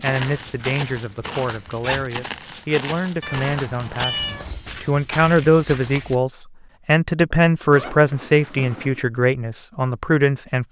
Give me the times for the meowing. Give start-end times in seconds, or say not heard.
3.2-4.5.